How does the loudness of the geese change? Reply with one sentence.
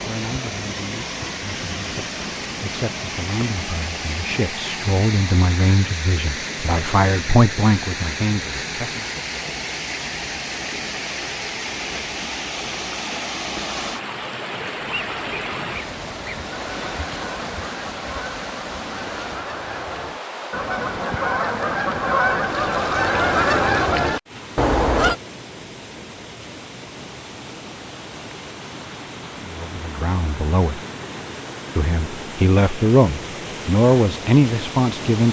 The loudness of the geese goes up.